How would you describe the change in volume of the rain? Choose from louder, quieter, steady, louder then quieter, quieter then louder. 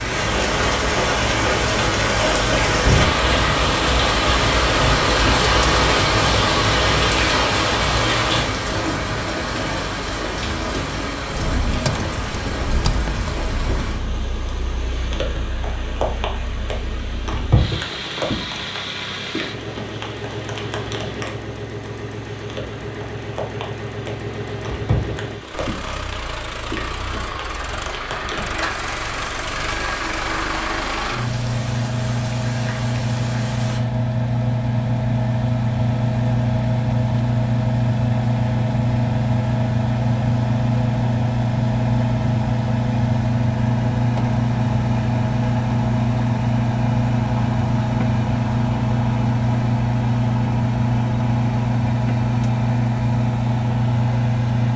quieter.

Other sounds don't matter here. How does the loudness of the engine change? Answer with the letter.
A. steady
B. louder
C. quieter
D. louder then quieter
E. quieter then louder
B.